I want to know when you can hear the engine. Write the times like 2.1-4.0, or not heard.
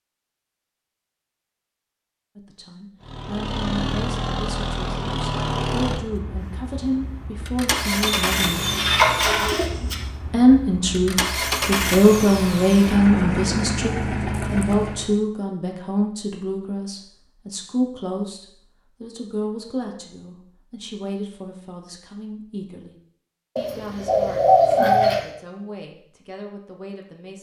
3.0-15.2.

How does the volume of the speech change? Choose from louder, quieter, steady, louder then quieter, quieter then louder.
louder then quieter.